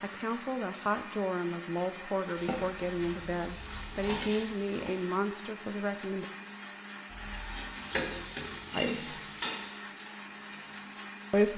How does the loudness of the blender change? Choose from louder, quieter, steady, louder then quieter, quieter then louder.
steady.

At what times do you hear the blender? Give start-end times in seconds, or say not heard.
0.0-11.5.